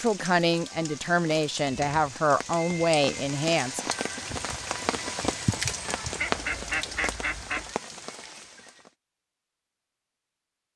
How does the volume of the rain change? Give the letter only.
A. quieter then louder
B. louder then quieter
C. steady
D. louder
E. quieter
B.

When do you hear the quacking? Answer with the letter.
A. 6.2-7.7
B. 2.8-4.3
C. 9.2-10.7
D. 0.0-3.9
A.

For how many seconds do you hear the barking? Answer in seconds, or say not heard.
not heard.